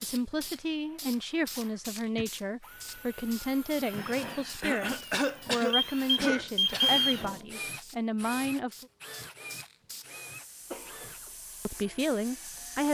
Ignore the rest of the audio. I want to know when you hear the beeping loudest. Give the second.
7 s.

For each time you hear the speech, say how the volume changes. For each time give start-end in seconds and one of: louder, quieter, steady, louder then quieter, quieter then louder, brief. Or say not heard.
0.0-8.8 steady
11.7-12.8 brief.